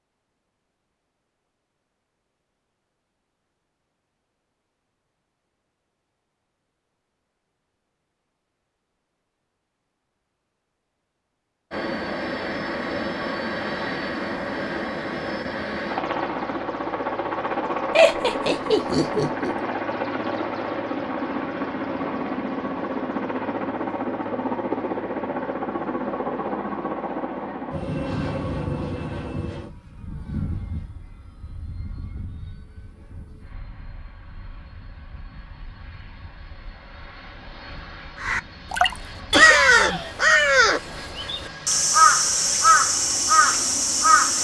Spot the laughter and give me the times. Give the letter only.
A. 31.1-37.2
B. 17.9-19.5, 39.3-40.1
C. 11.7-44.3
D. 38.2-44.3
B.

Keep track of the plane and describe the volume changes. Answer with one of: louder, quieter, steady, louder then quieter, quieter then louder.
quieter then louder.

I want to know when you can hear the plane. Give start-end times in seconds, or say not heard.
11.7-44.3.